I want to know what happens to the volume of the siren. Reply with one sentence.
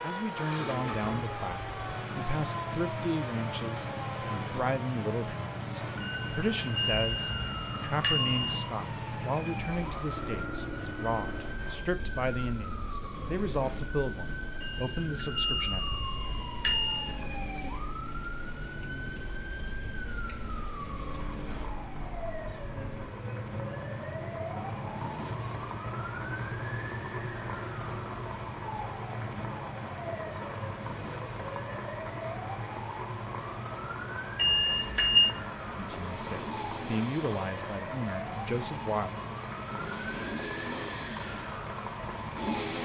The volume of the siren stays about the same.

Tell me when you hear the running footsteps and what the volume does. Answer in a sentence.
The running footsteps can't be heard in this clip.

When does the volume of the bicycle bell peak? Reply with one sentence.
The volume of the bicycle bell peaks at 35 seconds.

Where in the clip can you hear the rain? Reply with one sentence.
You can hear the rain from 0.0 to 42.7 s.